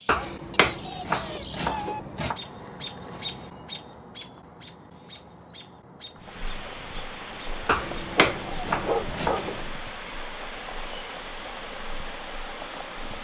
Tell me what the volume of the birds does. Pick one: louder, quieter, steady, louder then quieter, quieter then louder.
quieter.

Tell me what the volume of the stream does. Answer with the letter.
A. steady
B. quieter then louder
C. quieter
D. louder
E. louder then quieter
A.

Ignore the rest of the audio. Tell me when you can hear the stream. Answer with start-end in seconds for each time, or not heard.
6.2-13.1.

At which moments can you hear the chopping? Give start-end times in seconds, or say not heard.
0.1-2.4, 7.7-9.7.